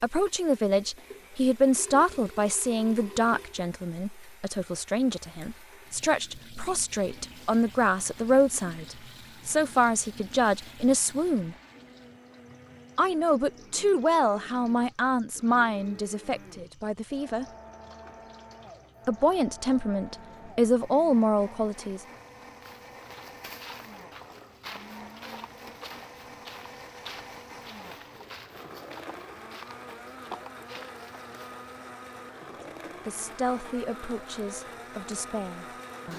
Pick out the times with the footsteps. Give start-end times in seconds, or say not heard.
22.6-31.6.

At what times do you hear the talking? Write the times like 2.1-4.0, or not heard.
0.0-11.6, 12.9-17.4, 19.1-22.0, 33.0-36.1.